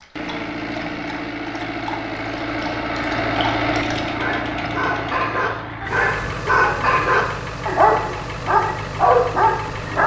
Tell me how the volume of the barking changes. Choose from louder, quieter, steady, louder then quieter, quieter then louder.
louder.